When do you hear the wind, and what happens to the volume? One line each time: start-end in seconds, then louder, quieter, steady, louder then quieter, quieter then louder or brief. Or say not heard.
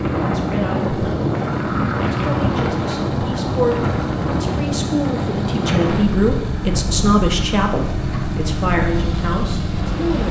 0.0-10.2 quieter.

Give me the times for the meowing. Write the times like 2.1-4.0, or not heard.
not heard.